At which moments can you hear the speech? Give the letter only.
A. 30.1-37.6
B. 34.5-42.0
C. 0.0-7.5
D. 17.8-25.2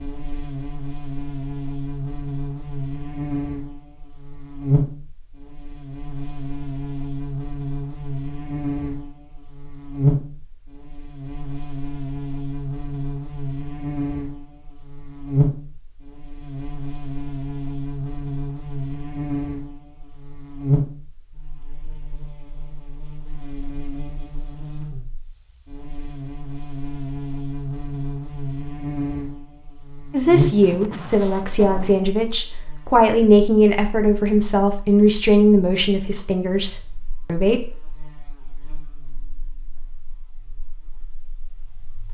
A.